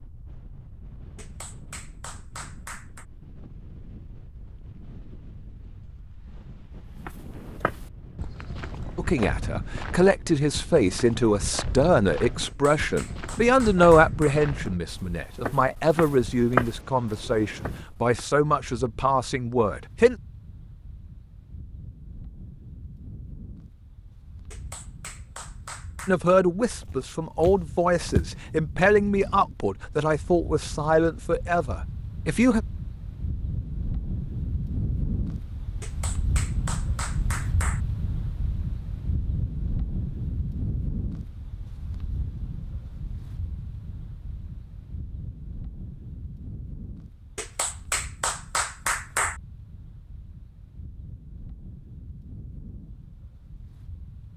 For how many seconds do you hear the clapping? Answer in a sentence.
The clapping can be heard for 10 seconds in total.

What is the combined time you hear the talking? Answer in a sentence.
The talking can be heard for 18 seconds in total.